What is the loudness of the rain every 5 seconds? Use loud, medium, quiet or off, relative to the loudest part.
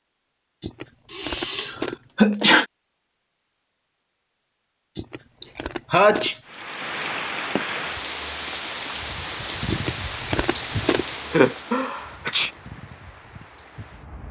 off, loud, medium.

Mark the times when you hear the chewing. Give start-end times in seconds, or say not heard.
0.6-2.1, 5.0-6.4, 9.7-11.2.